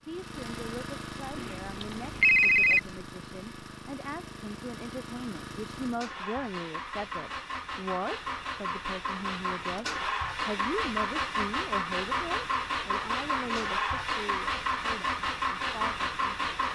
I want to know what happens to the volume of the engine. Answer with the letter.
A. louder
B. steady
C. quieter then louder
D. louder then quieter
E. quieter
A.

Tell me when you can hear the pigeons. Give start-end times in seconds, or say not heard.
not heard.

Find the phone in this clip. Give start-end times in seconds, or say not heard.
1.4-2.8.